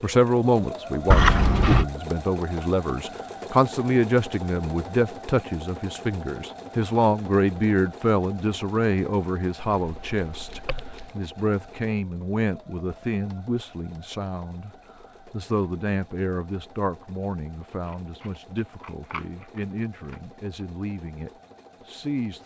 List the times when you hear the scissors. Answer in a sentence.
You can hear the scissors from 1.1 to 1.9 s, from 9.7 to 11.1 s and from 17.9 to 20.2 s.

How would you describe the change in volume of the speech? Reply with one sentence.
The loudness of the speech goes down.